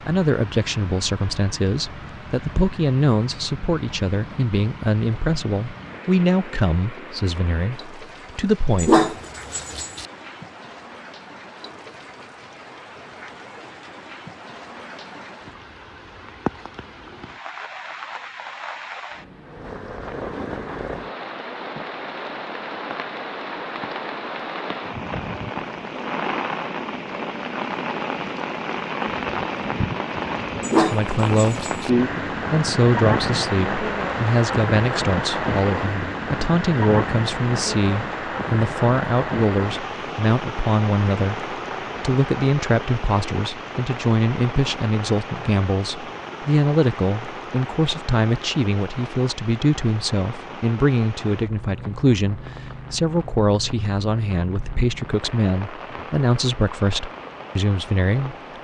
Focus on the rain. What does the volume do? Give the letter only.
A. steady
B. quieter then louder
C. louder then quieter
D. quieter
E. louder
C.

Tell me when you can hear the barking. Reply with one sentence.
The barking can be heard from 8.8 to 10.1 s and from 30.6 to 31.9 s.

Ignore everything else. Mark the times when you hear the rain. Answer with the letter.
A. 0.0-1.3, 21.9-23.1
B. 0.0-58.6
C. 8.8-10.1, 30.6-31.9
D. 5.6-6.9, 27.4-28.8
B.